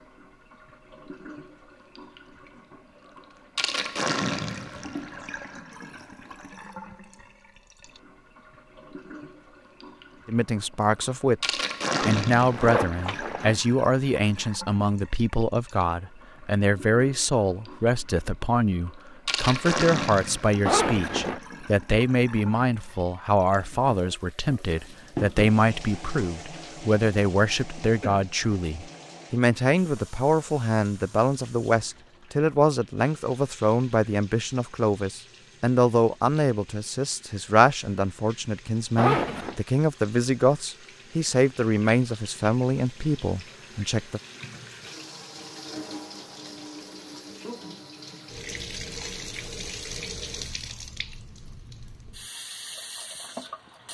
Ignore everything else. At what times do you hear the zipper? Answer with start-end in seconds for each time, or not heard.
11.9-13.6, 20.6-21.4, 39.0-39.5.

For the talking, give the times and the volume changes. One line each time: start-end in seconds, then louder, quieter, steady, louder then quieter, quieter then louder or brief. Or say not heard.
10.2-44.2 steady.